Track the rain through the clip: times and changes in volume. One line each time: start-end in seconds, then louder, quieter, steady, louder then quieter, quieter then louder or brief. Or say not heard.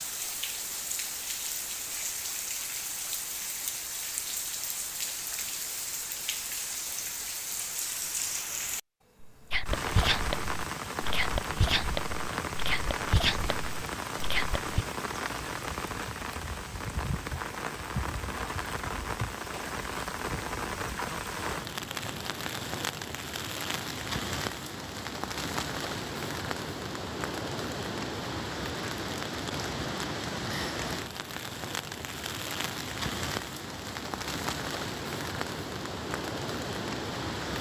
0.0-37.5 steady.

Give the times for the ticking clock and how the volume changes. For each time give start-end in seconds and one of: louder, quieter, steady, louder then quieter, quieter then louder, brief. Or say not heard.
not heard.